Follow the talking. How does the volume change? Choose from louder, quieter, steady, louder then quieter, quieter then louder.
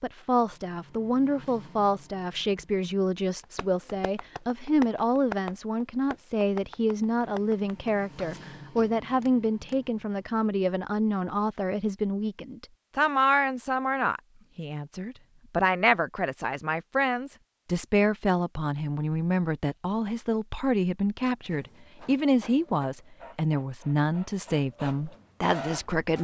steady.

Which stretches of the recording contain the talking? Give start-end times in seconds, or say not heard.
0.0-26.1.